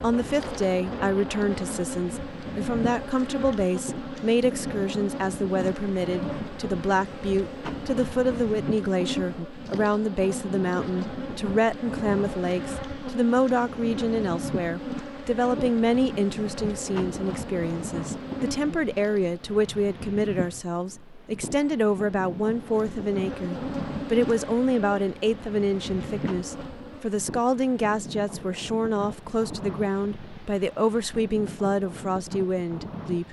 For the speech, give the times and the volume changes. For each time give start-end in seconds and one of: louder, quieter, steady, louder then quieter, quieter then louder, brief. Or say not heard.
0.0-33.2 steady.